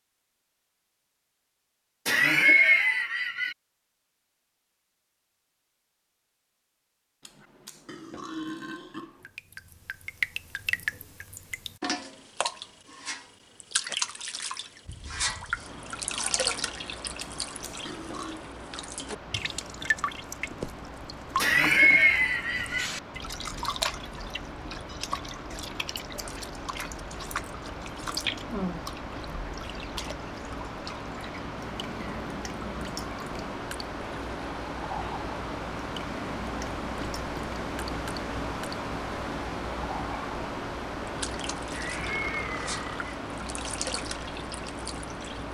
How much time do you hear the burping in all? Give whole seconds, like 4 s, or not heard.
4 s.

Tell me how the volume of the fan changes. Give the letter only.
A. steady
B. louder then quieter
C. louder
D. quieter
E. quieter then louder
C.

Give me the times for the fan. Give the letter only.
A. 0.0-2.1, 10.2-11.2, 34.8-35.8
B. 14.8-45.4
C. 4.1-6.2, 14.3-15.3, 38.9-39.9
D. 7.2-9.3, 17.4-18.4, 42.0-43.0
B.